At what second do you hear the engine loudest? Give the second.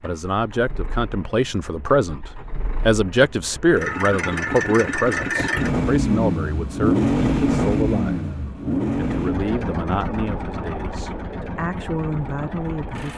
7 s.